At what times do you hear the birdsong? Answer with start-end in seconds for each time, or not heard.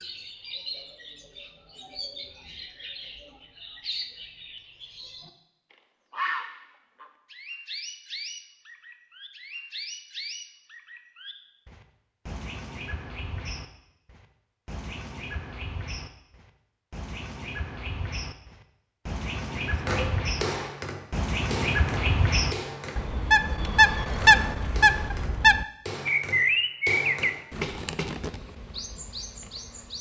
0.0-29.9.